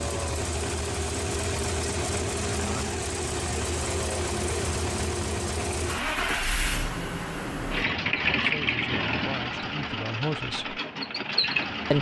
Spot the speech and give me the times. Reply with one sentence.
You can hear the speech from 8.3 to 10.8 s.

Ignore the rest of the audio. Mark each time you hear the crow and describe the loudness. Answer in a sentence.
You can't hear the crow here.